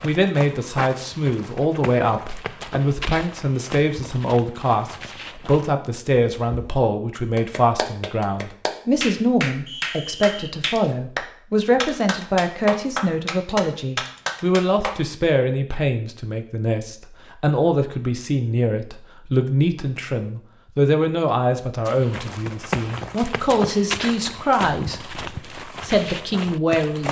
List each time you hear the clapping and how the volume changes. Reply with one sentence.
You can hear the clapping from 7.3 to 14.9 s, at a steady volume.